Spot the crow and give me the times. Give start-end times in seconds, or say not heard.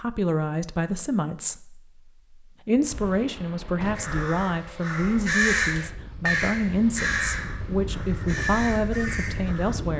4.0-9.8.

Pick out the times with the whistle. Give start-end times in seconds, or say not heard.
not heard.